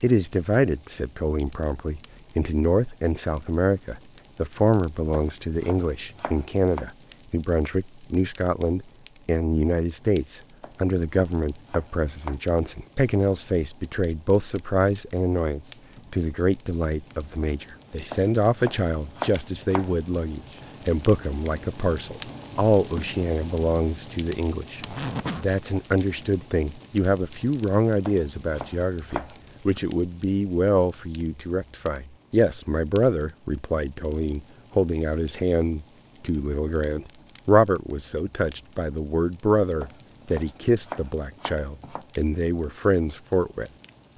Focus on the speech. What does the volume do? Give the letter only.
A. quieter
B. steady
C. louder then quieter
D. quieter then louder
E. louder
B.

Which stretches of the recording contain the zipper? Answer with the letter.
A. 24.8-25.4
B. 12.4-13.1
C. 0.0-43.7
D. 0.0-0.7
A.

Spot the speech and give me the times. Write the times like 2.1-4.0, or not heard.
0.0-43.7.